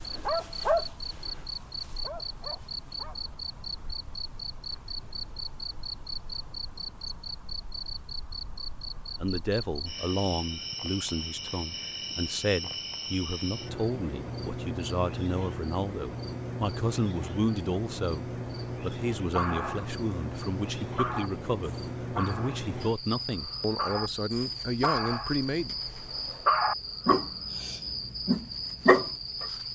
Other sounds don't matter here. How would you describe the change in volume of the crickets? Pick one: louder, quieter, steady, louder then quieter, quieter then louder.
steady.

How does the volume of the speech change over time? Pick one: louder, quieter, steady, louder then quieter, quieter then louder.
steady.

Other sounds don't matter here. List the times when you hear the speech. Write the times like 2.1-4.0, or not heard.
9.2-25.8.